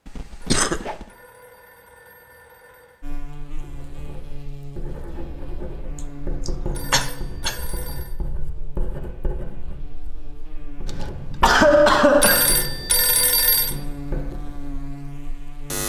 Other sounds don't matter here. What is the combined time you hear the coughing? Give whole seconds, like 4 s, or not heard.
4 s.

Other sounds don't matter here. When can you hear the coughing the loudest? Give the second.
12 s.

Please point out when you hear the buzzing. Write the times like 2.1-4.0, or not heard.
3.0-15.8.